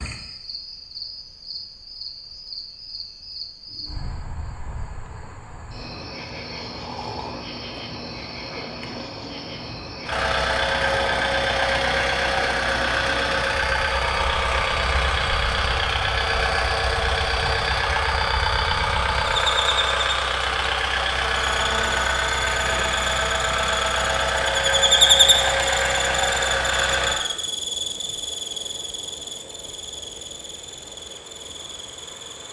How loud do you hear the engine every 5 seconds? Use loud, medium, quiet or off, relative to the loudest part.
off, off, loud, loud, loud, loud, off.